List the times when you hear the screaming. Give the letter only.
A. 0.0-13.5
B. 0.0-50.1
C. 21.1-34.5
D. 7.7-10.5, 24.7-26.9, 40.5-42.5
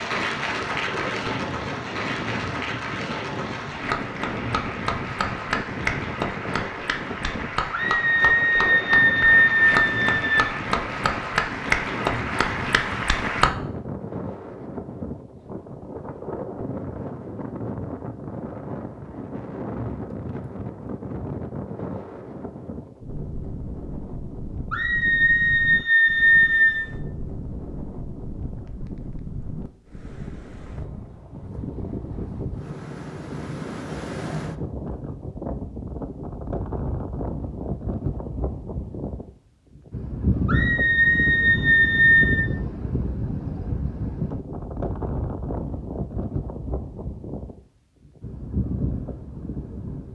D.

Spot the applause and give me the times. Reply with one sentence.
The applause can be heard from 0.0 to 13.5 s.